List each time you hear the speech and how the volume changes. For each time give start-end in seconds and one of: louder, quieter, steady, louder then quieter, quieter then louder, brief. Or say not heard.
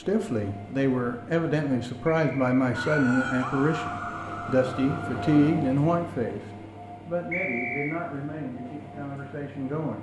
0.0-9.9 quieter.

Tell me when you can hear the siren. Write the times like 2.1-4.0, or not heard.
2.7-5.5.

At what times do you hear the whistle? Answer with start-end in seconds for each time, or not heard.
2.0-3.0, 7.3-8.0.